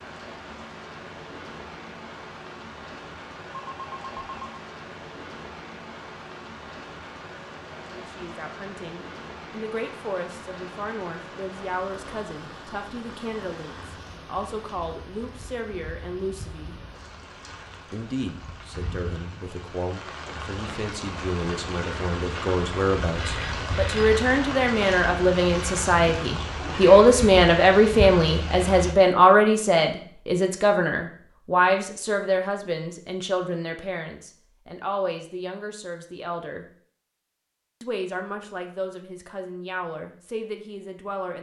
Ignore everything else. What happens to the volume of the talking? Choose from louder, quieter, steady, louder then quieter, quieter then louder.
louder then quieter.